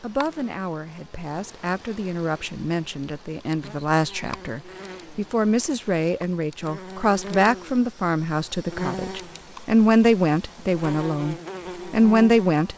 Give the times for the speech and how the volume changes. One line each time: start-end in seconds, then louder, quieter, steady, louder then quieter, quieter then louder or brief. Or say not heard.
0.0-12.7 louder.